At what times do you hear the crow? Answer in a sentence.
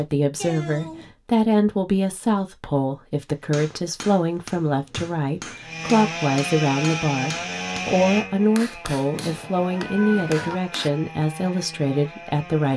You can't hear the crow here.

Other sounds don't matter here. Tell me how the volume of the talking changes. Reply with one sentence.
The loudness of the talking stays about the same.